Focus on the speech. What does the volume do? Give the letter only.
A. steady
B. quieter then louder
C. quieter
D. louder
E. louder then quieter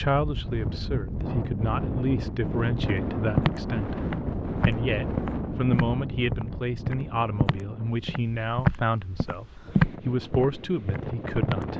A.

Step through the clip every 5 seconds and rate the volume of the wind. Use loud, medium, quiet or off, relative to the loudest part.
loud, medium, loud.